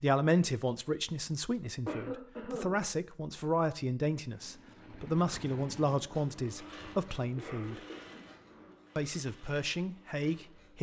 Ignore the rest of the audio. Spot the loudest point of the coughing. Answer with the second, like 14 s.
2 s.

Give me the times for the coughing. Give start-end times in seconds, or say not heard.
1.9-2.8, 7.3-8.8.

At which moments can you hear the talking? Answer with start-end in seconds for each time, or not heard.
0.0-7.8, 8.9-10.7.